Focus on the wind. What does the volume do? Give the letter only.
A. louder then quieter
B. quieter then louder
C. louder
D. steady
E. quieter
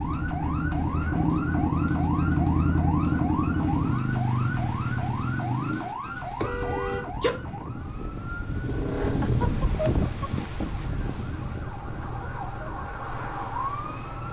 A.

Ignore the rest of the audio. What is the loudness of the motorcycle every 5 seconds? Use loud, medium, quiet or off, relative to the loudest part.
loud, medium, quiet.